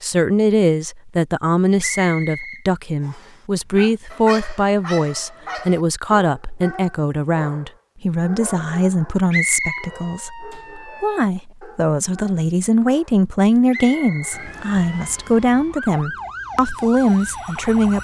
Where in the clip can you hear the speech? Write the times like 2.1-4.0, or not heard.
0.0-17.9.